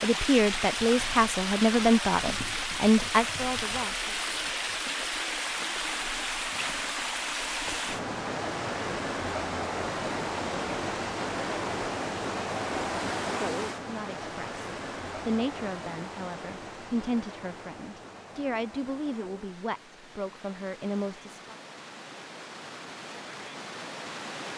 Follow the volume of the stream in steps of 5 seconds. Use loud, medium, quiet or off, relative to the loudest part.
loud, loud, loud, medium, medium.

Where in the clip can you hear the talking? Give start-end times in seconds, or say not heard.
0.0-4.2, 13.8-21.6.